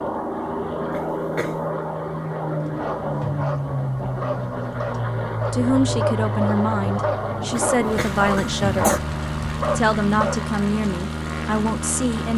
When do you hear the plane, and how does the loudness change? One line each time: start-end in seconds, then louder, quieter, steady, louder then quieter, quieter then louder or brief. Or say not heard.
0.0-12.3 steady.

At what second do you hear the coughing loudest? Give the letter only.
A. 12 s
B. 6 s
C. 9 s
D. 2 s
C.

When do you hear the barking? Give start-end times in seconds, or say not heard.
2.6-10.4.